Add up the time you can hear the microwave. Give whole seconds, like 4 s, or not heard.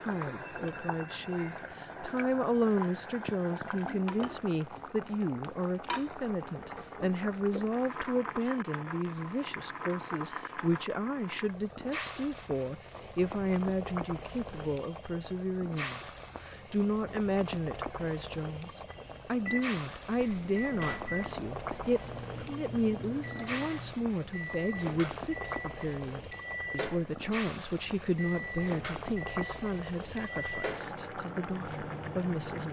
14 s.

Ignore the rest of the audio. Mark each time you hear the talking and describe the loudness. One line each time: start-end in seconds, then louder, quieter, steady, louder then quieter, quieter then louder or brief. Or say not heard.
0.0-32.6 steady.